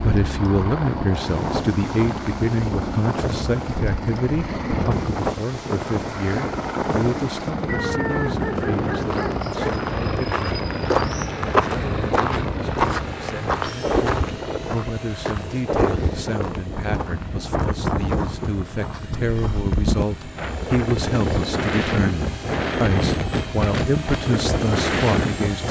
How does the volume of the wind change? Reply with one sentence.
The volume of the wind goes up.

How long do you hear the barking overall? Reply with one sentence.
The barking can be heard for 2 seconds in total.